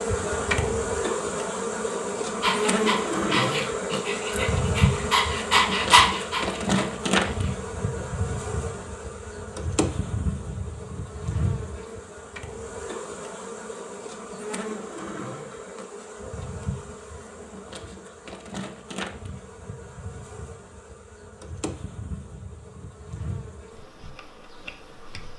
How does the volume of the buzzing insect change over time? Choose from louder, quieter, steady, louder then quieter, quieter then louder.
quieter.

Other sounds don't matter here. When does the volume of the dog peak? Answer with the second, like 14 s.
6 s.